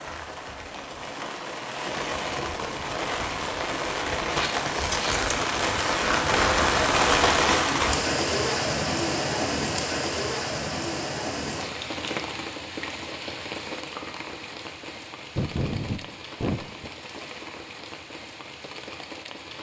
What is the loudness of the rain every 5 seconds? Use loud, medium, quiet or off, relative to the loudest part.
medium, loud, medium, quiet.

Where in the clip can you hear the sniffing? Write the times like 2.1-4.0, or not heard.
4.3-5.2, 15.3-16.9.